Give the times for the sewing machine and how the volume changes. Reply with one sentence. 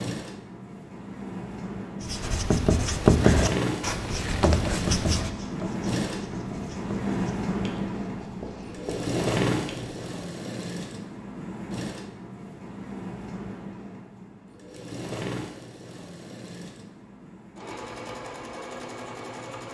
You can hear the sewing machine from 0.0 to 19.6 s, getting quieter.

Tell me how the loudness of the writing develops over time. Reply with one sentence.
The volume of the writing goes down.